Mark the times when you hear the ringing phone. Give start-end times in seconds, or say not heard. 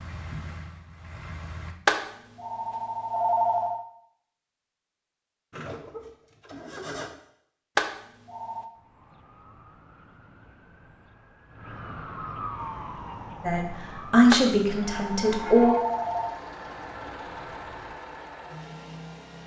1.9-3.8, 7.8-8.7, 14.3-16.4.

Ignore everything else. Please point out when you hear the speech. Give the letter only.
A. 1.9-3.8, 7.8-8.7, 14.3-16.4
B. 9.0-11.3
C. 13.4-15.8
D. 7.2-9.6
C.